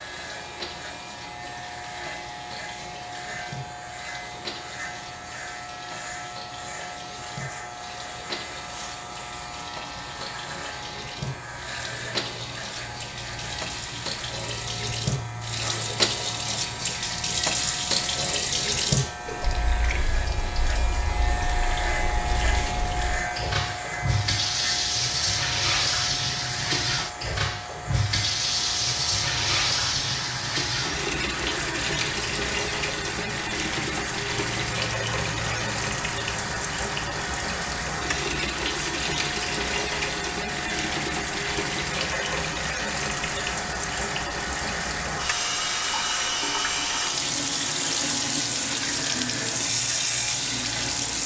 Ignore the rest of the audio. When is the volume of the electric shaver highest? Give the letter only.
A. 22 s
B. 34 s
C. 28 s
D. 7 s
A.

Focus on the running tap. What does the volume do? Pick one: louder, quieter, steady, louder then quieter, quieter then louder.
louder.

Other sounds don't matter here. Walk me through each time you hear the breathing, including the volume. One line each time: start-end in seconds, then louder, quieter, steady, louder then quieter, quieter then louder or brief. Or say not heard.
not heard.